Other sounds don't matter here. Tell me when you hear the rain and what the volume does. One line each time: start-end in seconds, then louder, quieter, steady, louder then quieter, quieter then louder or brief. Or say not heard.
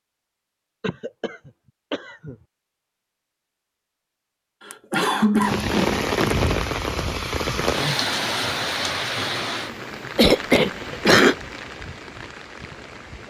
5.4-13.2 quieter.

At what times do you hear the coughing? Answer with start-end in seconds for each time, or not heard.
0.8-2.4, 4.6-6.5, 10.2-11.3.